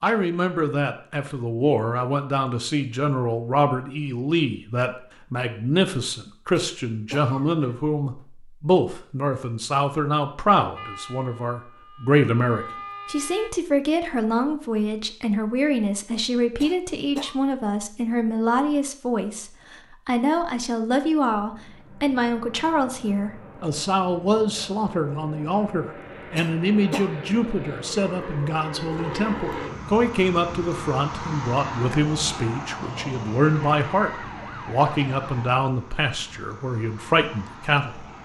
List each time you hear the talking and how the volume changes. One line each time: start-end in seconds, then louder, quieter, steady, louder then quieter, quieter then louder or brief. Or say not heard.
0.0-38.0 steady.